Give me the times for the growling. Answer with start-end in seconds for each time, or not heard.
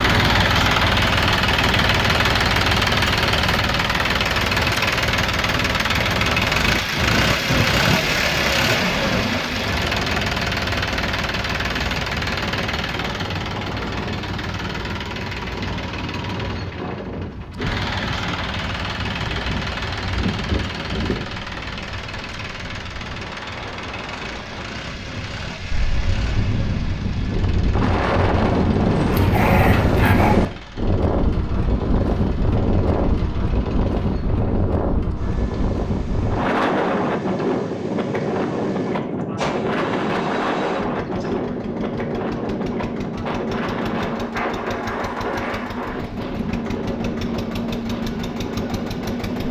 29.1-30.4.